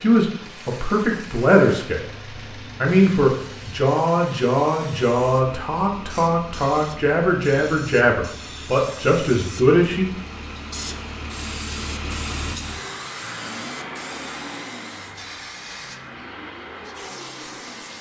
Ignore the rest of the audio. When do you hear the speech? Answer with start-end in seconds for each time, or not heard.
0.0-2.0, 2.8-10.1.